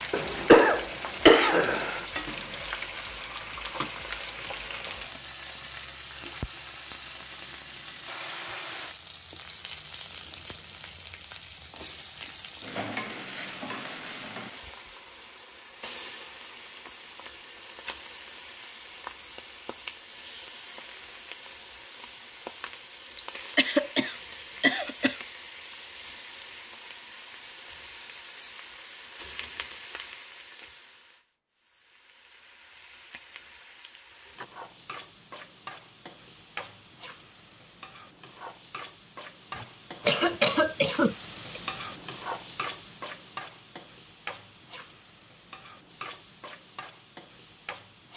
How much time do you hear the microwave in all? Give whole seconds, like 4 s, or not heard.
not heard.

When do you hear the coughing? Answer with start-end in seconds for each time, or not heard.
0.1-2.0, 23.6-25.2, 39.5-41.6.